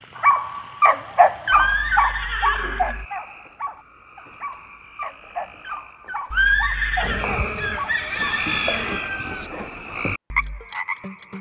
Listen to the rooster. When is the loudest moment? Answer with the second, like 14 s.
8 s.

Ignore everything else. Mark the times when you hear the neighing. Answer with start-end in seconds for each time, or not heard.
1.5-3.0, 6.3-7.3.